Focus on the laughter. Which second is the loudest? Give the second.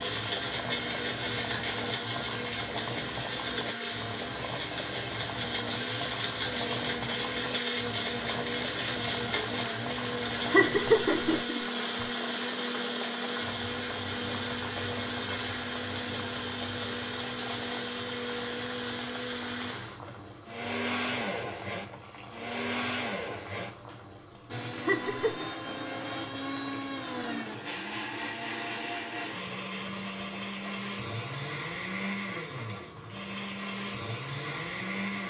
11 s.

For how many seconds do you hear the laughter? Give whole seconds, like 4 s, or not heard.
2 s.